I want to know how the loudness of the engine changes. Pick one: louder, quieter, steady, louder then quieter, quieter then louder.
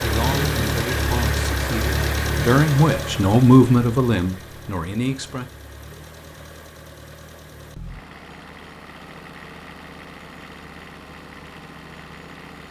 quieter.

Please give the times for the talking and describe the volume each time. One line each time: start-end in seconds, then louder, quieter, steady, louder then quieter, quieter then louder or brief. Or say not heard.
0.0-5.5 louder then quieter.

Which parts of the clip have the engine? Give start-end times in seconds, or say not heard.
0.0-12.6.